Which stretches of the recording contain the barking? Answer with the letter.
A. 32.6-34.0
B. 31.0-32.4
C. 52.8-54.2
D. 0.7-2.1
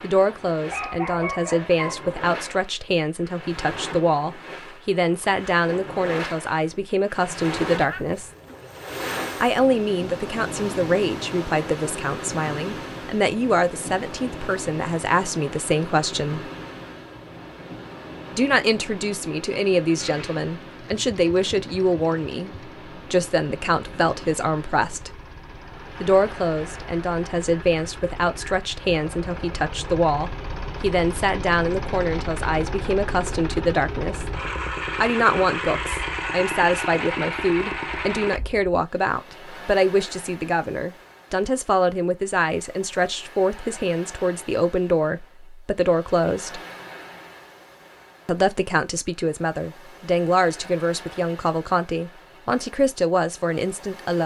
D.